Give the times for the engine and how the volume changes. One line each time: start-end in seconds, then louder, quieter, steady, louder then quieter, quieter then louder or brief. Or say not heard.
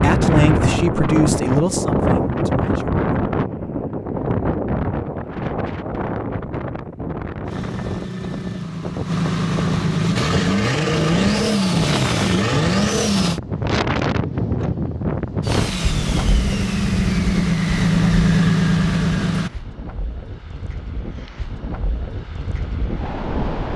7.5-13.4 louder
15.4-19.6 louder.